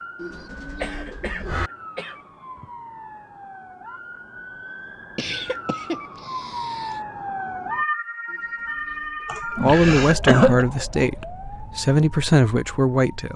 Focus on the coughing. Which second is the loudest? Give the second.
10 s.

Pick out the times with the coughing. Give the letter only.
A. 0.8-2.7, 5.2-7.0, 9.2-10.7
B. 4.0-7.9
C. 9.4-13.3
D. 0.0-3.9
A.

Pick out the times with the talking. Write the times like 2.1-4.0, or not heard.
9.4-13.3.